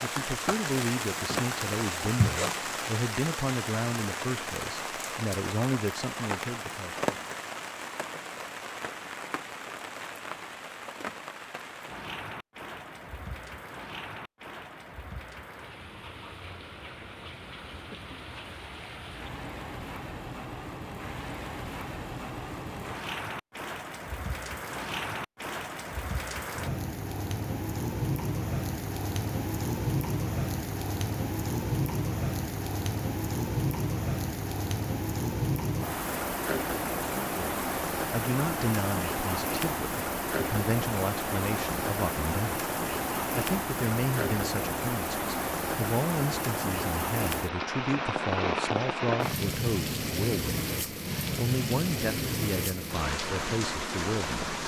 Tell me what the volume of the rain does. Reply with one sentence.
The loudness of the rain goes down, then up.